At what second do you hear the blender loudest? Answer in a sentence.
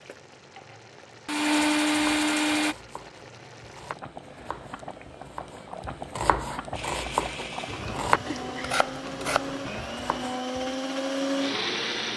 The loudest moment of the blender is at 2 seconds.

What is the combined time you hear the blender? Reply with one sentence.
You can hear the blender for 8 seconds altogether.